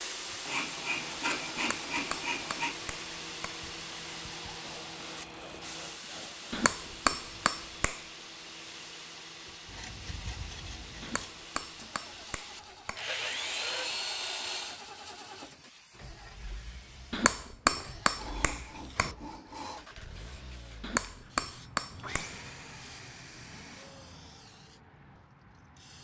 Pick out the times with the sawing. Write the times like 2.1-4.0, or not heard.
0.5-2.8, 4.6-6.7, 9.7-11.3, 12.9-14.8, 18.1-19.9, 21.9-23.9.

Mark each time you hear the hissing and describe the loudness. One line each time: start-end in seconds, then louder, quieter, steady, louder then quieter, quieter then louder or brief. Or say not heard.
0.0-25.9 quieter.